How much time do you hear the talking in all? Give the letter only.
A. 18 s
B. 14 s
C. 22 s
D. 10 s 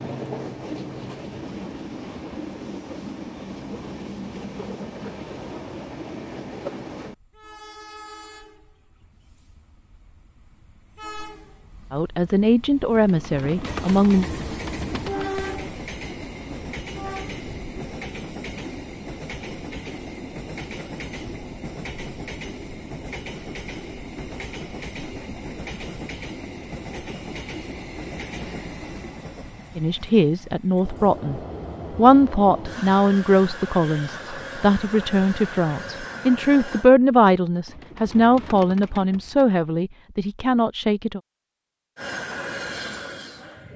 B.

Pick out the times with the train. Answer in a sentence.
You can hear the train from 0.0 to 36.9 s and from 42.0 to 43.7 s.